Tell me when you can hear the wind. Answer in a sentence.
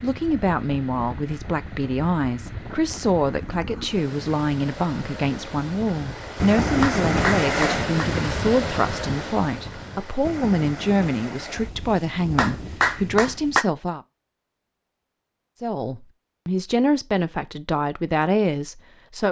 The wind can be heard from 0.0 to 13.6 s.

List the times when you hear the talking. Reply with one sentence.
The talking can be heard from 0.0 to 14.0 s and from 15.6 to 19.2 s.